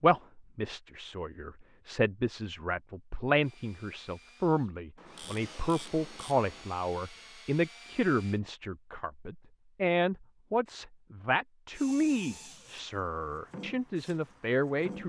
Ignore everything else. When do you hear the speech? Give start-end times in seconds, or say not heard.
0.0-15.0.